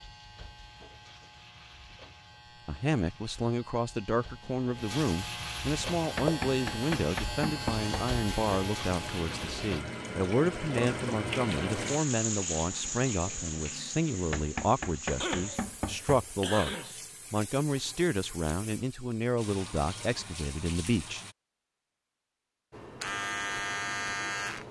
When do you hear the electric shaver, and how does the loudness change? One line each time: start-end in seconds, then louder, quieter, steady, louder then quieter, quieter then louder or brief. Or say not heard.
0.0-9.8 louder
22.7-24.6 brief.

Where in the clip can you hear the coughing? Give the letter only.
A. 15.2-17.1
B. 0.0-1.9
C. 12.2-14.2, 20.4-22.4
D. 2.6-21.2
A.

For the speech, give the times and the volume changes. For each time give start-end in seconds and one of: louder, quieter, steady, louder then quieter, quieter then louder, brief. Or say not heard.
2.6-21.2 steady.